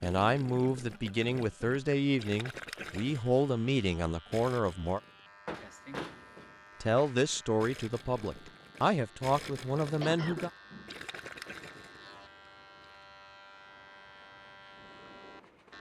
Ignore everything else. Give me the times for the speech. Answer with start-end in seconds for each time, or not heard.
0.0-5.0, 6.8-10.5.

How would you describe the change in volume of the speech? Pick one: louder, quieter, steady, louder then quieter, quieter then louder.
steady.